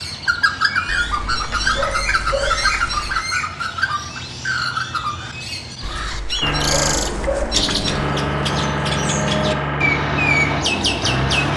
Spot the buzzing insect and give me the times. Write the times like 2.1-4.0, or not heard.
not heard.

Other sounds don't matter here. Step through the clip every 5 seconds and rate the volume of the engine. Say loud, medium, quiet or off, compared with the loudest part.
off, loud, loud.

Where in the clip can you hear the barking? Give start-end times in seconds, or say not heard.
0.8-3.2, 5.8-7.9.